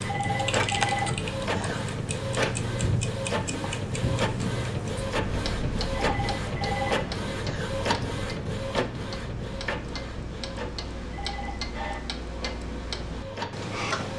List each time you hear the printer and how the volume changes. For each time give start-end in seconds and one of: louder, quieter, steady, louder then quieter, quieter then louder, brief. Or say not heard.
0.0-14.1 quieter.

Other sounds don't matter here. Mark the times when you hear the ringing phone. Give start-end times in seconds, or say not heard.
0.0-1.8, 6.0-7.7, 11.1-12.0.